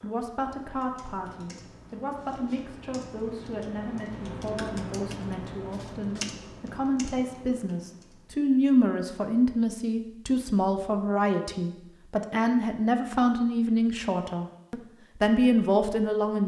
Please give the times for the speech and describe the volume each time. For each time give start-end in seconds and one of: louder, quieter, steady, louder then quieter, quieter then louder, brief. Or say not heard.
0.0-16.4 louder.